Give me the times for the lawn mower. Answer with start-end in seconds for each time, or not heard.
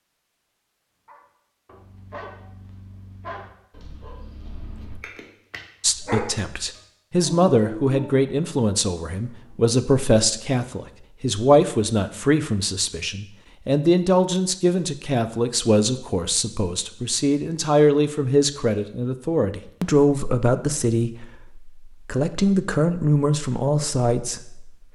not heard.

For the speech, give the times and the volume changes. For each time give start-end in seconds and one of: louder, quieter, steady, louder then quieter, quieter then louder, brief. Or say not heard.
5.8-24.7 steady.